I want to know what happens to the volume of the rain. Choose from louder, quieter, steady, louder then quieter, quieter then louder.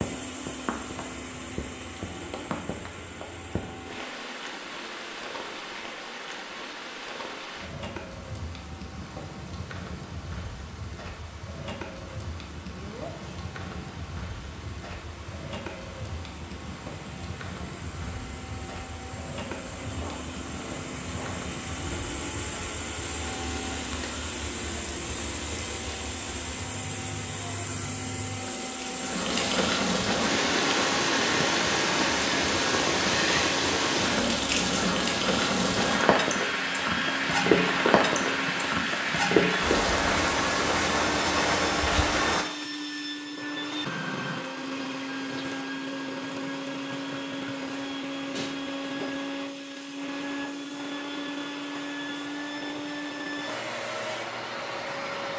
louder.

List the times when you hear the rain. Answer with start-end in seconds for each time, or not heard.
0.0-42.5.